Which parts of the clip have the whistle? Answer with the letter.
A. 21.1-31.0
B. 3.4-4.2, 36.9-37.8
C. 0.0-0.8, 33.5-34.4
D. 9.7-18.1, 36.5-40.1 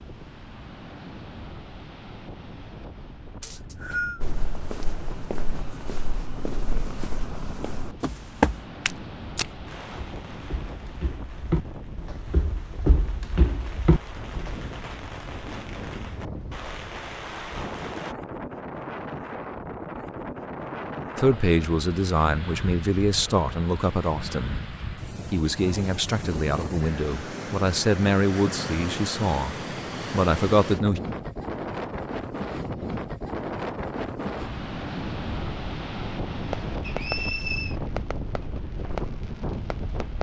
B.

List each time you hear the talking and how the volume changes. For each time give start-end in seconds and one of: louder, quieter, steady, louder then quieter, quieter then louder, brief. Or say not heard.
21.1-31.0 steady.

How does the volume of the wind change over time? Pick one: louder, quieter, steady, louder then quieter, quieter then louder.
louder.